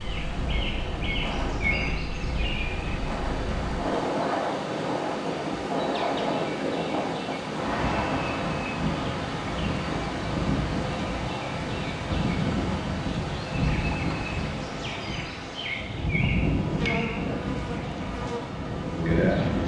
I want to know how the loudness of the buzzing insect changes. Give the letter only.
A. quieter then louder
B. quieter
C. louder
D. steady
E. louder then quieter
D.